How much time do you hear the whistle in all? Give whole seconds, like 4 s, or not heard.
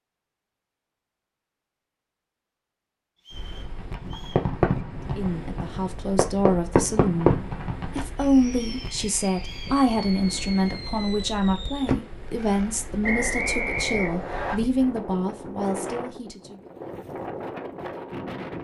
4 s.